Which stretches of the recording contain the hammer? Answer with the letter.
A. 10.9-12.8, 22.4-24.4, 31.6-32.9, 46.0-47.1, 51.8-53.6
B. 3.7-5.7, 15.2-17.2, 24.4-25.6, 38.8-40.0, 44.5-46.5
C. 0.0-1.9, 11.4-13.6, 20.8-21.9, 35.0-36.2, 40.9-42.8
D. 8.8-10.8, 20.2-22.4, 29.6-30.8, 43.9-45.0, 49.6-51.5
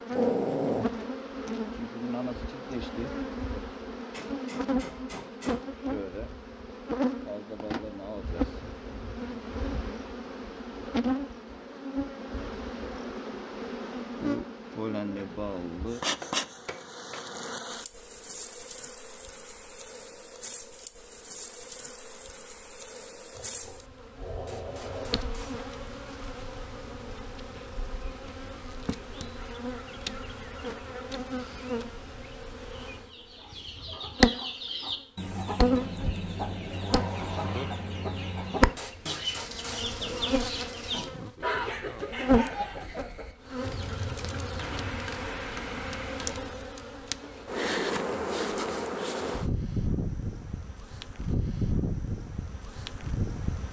B.